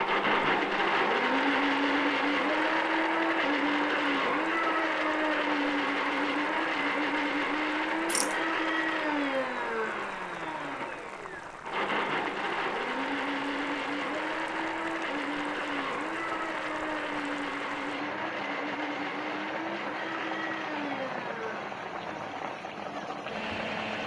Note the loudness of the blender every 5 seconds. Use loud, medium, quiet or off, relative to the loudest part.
loud, loud, medium, medium, medium.